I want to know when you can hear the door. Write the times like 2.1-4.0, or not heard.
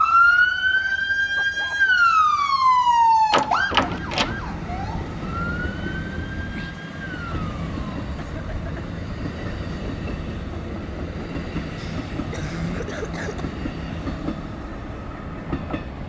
3.3-4.4.